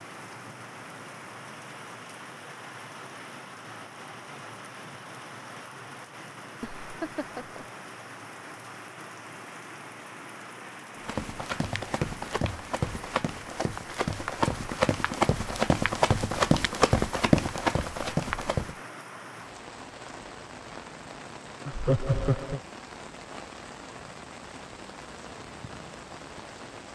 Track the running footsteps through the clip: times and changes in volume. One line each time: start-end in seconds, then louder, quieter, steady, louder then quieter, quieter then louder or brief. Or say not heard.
11.0-18.8 louder.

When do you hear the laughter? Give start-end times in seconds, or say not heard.
6.6-7.7, 21.6-22.6.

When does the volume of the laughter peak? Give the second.
22 s.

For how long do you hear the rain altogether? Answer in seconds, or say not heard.
27 s.